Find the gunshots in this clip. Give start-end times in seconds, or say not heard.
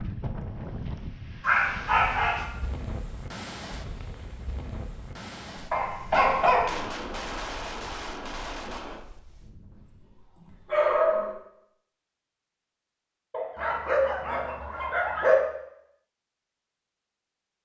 6.1-9.1.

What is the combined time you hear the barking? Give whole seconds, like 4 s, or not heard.
5 s.